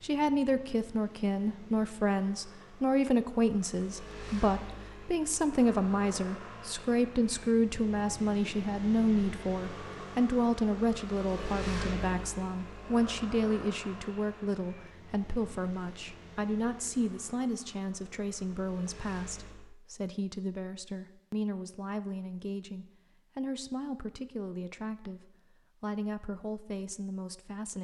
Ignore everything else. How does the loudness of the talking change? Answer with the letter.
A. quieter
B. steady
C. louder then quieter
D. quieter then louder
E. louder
A.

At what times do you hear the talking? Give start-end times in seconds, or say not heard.
0.0-27.7.